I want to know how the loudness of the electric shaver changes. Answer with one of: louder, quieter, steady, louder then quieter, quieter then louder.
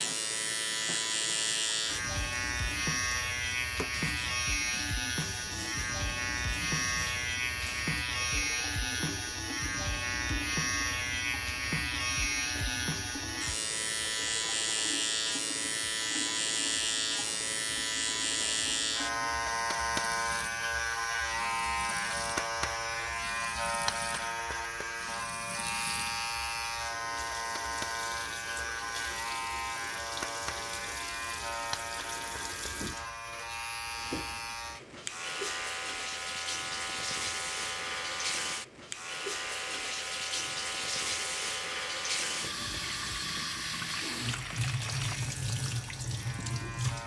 quieter.